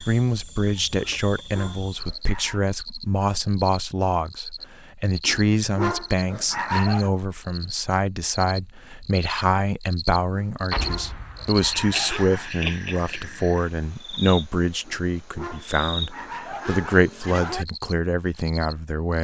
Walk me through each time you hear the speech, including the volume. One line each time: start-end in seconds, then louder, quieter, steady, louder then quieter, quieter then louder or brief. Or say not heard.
0.0-19.2 steady.